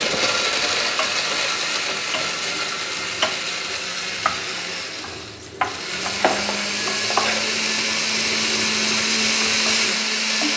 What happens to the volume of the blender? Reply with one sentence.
The volume of the blender goes down, then up.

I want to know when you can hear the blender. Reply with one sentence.
The blender can be heard from 0.0 to 10.5 s.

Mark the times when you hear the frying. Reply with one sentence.
The frying can be heard from 0.0 to 10.5 s.